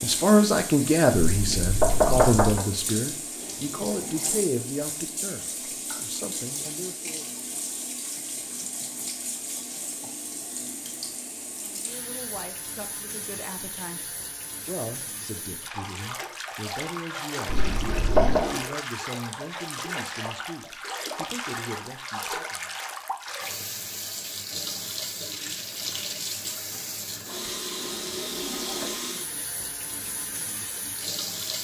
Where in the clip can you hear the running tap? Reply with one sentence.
You can hear the running tap from 0.0 to 31.6 s.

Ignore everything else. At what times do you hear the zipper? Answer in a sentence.
The zipper can be heard from 3.4 to 4.5 s, from 17.5 to 18.8 s and from 27.8 to 29.0 s.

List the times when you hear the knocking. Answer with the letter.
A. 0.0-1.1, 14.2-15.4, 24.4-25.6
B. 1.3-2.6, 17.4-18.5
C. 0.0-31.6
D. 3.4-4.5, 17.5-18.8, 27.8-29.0
B.